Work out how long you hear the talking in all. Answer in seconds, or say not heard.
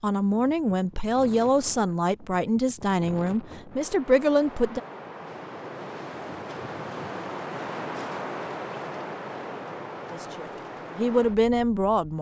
7 s.